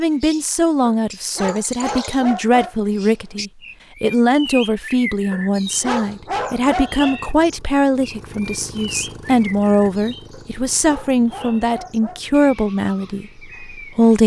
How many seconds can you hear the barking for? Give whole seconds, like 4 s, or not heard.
6 s.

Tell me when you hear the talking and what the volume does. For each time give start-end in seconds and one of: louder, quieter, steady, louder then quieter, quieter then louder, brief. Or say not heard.
0.0-14.2 steady.